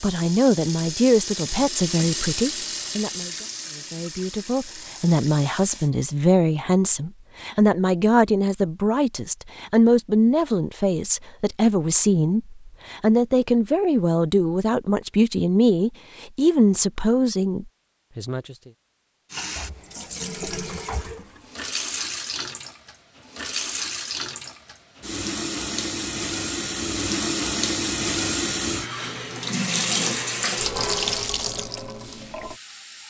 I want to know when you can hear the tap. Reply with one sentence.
The tap can be heard from 0.0 to 5.9 s and from 19.3 to 33.0 s.